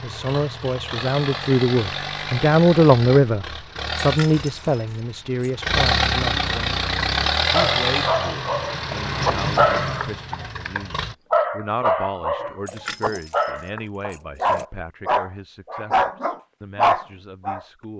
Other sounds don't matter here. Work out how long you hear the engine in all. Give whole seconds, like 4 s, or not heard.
11 s.